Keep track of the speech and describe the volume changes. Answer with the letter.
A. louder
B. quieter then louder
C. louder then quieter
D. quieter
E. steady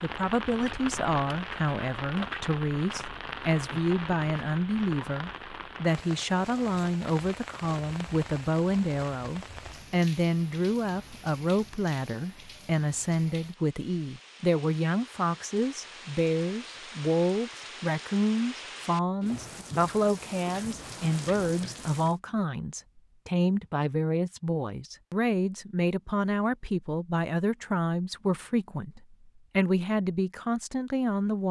E.